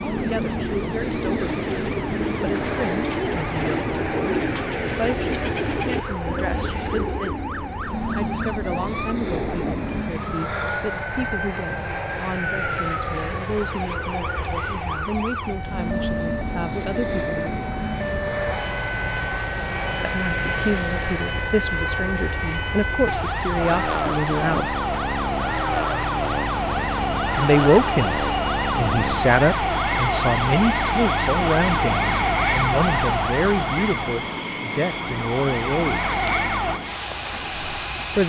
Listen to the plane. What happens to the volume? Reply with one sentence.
The loudness of the plane stays about the same.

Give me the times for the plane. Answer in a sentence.
The plane can be heard from 0.0 to 38.2 s.